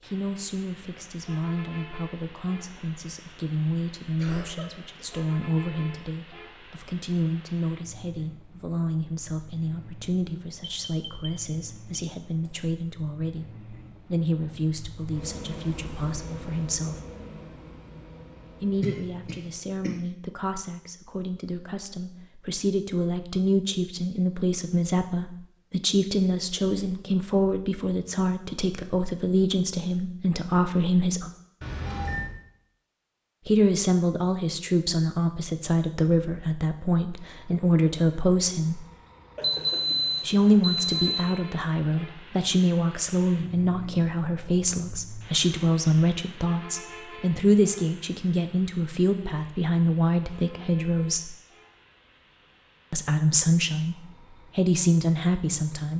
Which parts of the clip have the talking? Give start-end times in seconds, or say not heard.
0.1-17.0, 18.6-31.3, 33.5-38.9, 40.2-51.4, 52.9-54.0, 54.5-55.9.